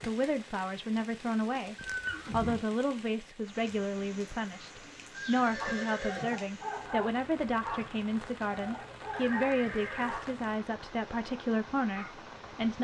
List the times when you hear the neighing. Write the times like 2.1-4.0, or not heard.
1.8-2.6, 5.1-6.3, 9.1-10.2.